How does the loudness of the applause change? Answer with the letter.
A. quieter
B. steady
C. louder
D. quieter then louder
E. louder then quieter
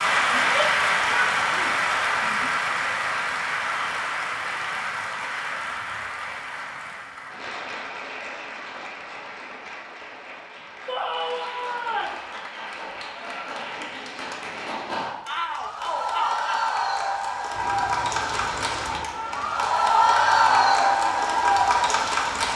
D.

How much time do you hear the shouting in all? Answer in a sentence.
The shouting can be heard for 5 seconds in total.